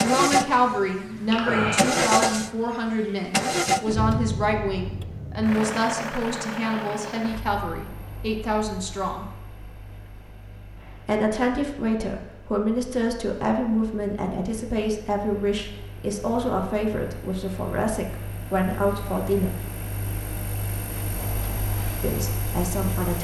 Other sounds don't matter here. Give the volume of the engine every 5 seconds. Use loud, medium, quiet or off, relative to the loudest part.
loud, medium, quiet, quiet, medium.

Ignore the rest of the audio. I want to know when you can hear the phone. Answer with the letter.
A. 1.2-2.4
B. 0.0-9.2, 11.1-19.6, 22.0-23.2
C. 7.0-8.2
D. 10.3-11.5
A.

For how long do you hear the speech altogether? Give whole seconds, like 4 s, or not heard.
19 s.